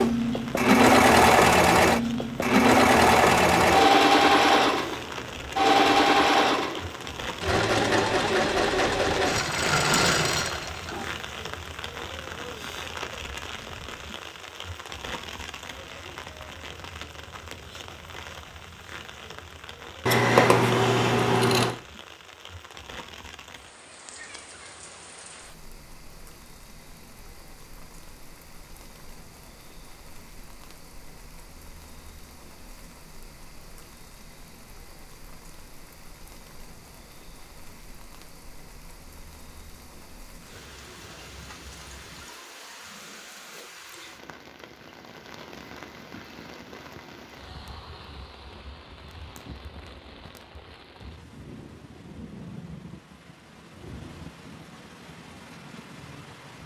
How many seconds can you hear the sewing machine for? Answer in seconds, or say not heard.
11 s.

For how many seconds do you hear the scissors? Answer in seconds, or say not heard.
2 s.